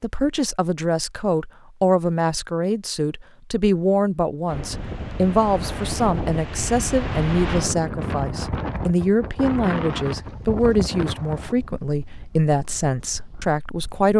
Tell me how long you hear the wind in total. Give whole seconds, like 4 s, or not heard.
10 s.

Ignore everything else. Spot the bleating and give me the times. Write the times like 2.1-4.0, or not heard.
not heard.